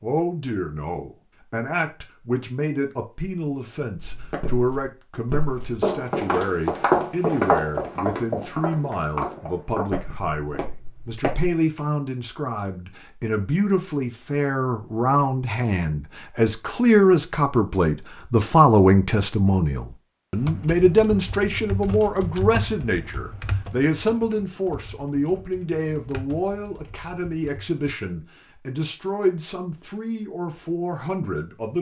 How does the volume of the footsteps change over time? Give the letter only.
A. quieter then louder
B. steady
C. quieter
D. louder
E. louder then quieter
E.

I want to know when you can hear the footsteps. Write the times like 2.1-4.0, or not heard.
4.0-11.5.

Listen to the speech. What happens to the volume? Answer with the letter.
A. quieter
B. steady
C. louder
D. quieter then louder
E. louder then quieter
E.